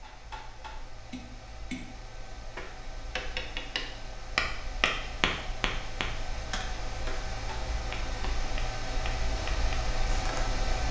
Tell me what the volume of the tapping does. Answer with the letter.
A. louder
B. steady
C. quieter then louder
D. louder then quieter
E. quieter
D.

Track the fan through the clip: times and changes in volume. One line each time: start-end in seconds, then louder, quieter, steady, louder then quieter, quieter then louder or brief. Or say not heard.
0.0-10.8 louder.